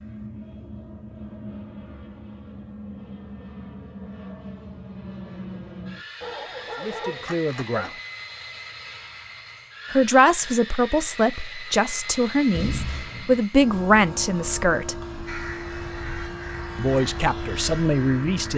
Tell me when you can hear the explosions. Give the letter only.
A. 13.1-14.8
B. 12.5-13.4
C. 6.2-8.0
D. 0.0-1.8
B.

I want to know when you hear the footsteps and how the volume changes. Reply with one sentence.
The footsteps can't be heard in this clip.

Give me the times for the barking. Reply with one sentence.
You can hear the barking from 6.2 to 8.0 s.